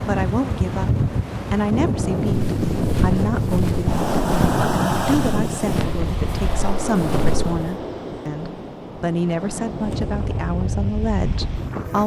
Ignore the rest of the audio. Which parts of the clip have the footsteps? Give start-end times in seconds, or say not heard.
2.1-7.7.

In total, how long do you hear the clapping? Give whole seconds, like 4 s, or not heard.
not heard.